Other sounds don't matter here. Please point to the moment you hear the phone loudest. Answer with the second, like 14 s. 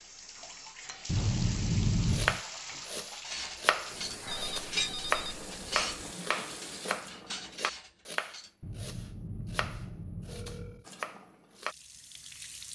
2 s.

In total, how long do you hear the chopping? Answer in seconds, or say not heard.
10 s.